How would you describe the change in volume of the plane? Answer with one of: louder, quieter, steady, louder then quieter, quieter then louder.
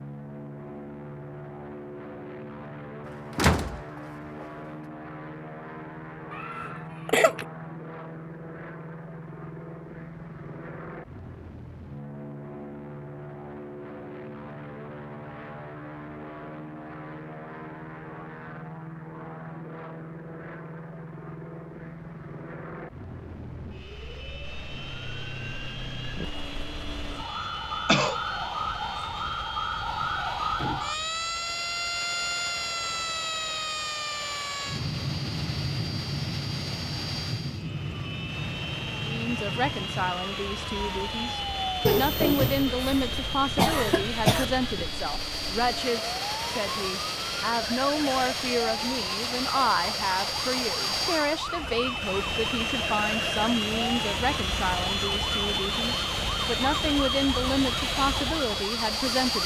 louder.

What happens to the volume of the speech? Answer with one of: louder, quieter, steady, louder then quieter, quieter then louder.
steady.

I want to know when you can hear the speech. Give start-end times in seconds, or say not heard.
38.9-59.4.